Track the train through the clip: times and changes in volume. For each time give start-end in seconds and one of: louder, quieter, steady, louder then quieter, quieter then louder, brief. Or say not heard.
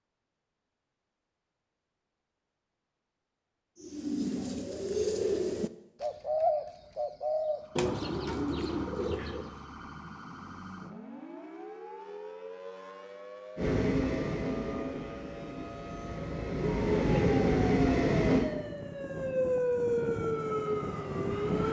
13.6-18.4 quieter then louder.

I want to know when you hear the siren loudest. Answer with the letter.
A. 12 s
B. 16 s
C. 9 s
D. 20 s
D.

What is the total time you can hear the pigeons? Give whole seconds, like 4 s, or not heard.
6 s.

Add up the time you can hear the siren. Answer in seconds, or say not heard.
14 s.